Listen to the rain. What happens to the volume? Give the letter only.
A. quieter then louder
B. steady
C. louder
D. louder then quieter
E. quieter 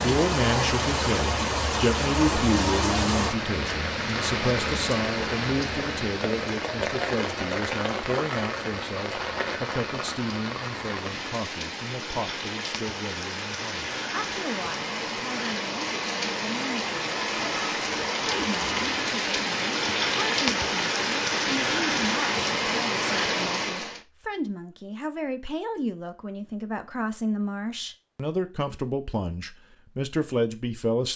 A.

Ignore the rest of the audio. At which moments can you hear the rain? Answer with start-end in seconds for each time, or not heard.
0.0-24.0.